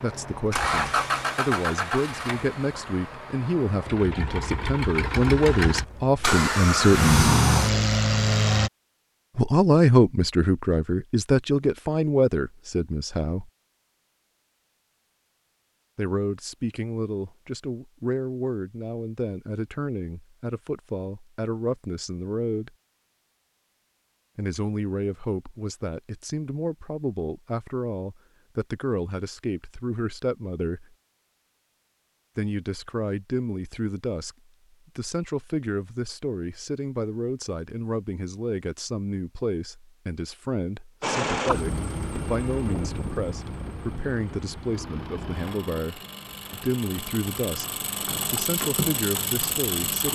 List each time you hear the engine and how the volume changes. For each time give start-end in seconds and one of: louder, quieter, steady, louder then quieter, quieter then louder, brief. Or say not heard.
0.0-8.7 quieter then louder
41.0-50.1 quieter then louder.